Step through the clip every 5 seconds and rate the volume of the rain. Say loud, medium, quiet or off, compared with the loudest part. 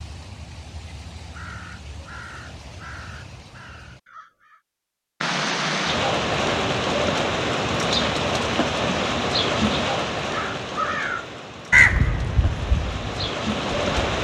off, loud, medium.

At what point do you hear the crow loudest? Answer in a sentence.
The loudest moment of the crow is at 12 seconds.